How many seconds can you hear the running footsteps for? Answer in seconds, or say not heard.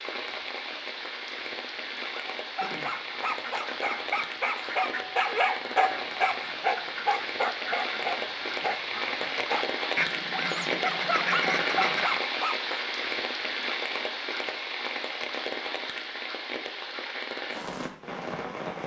not heard.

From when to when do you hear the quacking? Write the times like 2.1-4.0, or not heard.
2.6-12.2.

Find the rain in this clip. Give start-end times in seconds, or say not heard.
0.0-18.8.